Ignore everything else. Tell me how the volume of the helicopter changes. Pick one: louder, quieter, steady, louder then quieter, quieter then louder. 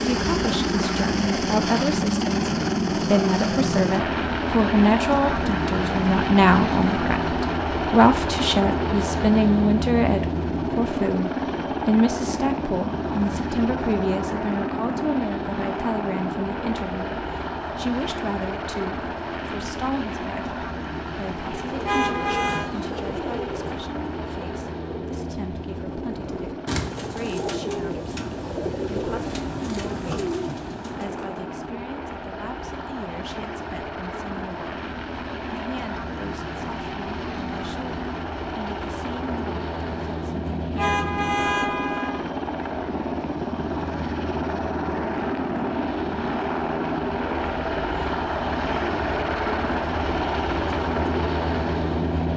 quieter then louder.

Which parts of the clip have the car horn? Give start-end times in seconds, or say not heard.
21.9-22.7, 40.8-42.2.